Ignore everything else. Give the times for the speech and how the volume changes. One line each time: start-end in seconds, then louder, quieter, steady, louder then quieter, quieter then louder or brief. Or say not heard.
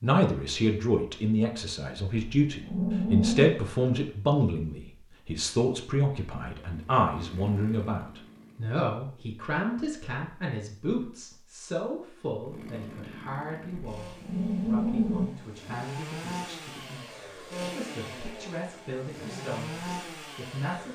0.0-20.9 quieter.